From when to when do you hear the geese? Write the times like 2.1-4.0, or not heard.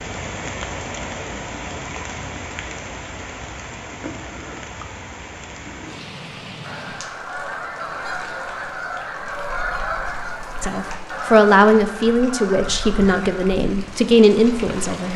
6.6-13.6.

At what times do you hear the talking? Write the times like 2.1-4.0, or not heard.
10.6-15.1.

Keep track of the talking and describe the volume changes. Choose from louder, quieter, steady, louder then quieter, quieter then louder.
quieter then louder.